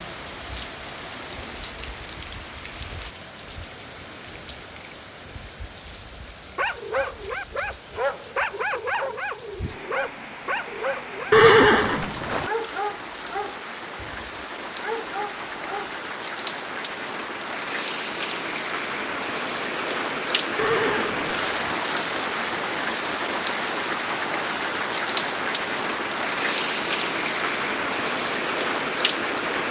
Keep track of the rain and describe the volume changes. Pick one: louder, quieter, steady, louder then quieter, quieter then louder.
louder.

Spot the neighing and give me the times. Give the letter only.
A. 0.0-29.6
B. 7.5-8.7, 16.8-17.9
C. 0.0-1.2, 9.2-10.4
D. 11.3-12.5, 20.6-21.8
D.